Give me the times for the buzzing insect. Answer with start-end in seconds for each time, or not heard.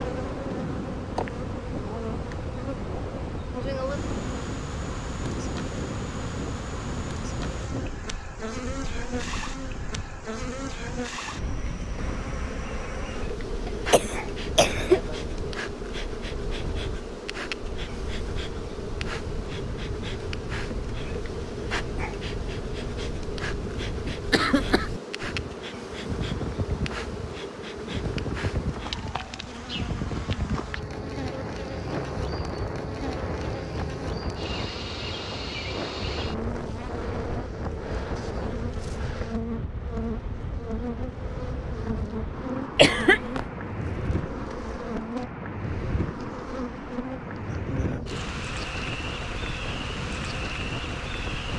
0.0-51.5.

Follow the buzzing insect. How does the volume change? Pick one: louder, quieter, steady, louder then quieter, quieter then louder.
steady.